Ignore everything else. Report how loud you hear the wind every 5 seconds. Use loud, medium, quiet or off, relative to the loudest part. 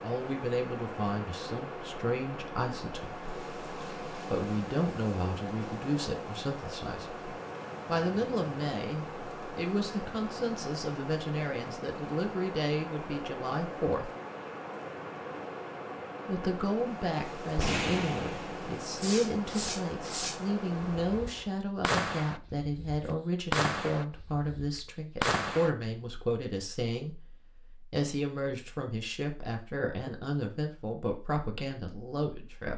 loud, loud, loud, loud, loud, off, off.